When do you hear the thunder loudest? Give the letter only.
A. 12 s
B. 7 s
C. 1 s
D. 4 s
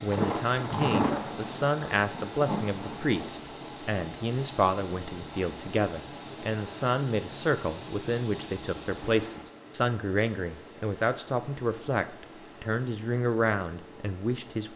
C.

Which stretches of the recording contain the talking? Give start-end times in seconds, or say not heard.
0.0-14.7.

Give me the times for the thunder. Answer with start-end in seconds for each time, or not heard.
0.1-3.4.